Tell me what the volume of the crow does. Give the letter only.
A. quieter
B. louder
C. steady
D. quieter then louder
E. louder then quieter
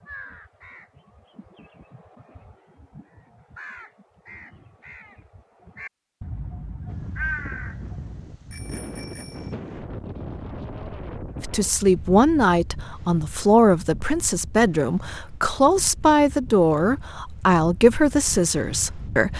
B.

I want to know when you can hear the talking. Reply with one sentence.
The talking can be heard from 11.4 to 19.3 s.